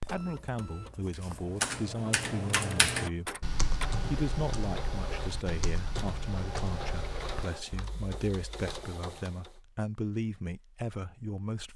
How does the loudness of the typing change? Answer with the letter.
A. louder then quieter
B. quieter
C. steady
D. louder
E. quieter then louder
B.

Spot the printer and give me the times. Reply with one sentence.
You can hear the printer from 0.0 to 9.6 s.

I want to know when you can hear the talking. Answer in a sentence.
You can hear the talking from 0.1 to 11.7 s.